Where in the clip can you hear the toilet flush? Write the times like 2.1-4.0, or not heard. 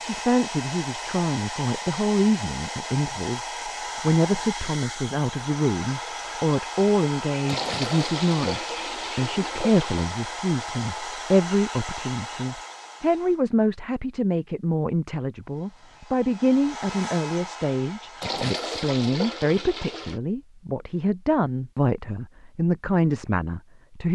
7.5-10.1, 18.2-20.2.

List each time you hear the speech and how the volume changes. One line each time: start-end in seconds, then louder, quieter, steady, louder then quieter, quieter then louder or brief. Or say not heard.
0.0-24.0 steady.